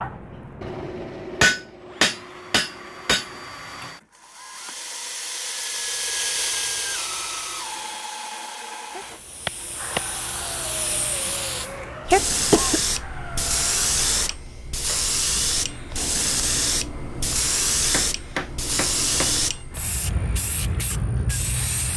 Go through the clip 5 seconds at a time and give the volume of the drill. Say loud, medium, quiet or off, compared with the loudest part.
medium, loud, medium, medium, quiet.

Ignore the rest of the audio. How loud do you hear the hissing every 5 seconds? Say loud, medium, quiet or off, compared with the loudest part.
off, quiet, loud, loud, loud.